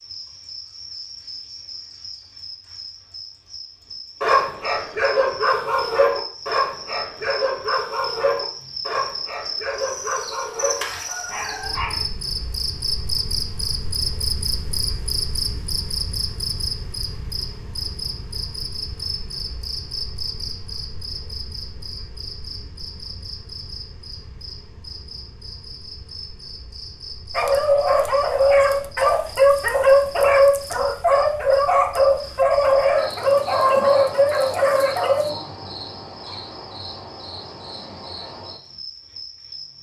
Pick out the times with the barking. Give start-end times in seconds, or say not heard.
4.2-12.1, 27.4-35.2.